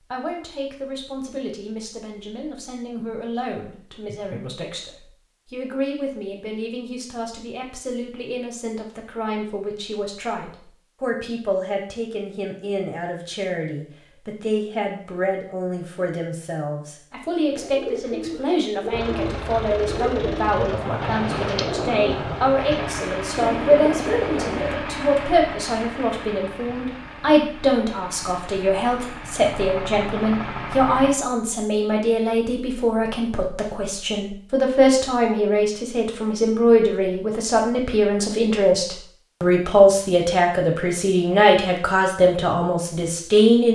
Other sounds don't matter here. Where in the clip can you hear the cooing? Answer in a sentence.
You can hear the cooing from 17.5 to 24.8 s.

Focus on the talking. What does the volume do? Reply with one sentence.
The loudness of the talking goes up.